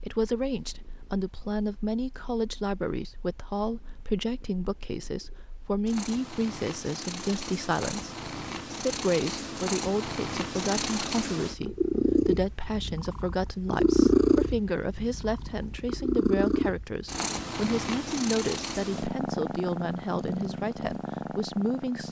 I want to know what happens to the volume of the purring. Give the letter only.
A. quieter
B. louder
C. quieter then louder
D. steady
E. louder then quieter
E.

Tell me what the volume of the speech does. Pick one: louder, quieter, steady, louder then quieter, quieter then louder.
steady.